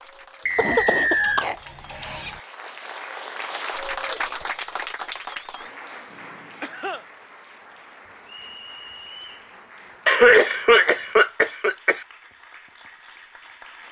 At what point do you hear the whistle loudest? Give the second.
1 s.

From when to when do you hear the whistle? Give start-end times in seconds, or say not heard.
0.5-1.4, 8.2-9.4.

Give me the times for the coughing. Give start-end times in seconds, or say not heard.
0.6-2.4, 6.1-7.0, 10.1-12.0.